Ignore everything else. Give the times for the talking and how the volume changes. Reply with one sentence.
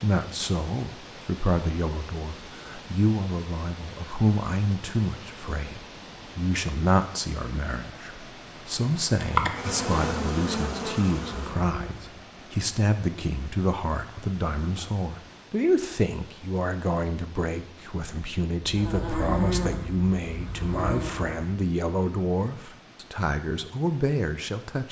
You can hear the talking from 0.0 to 24.8 s, at a steady volume.